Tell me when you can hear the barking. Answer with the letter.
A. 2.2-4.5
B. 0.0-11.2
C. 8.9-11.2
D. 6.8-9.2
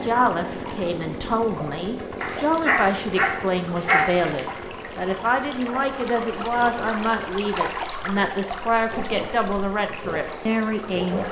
A.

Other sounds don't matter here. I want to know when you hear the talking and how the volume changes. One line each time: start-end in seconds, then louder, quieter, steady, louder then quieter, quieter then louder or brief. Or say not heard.
0.0-11.2 steady.